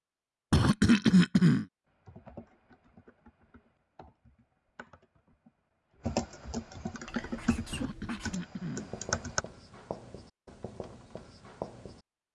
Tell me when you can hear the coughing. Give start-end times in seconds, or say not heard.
0.5-1.6, 7.7-8.9.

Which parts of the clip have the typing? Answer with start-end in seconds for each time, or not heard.
1.9-9.4.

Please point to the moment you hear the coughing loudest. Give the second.
1 s.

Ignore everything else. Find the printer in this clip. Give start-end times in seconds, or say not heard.
not heard.